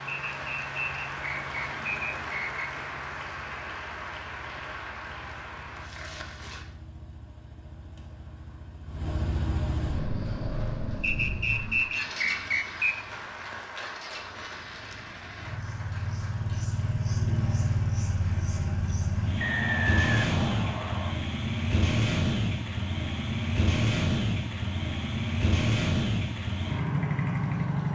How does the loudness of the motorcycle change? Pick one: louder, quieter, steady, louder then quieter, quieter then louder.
louder.